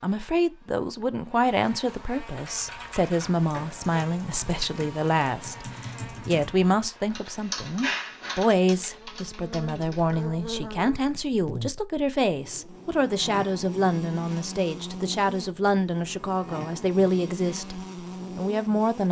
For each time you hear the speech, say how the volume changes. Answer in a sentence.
You can hear the speech from 0.0 to 19.0 s, at a steady volume.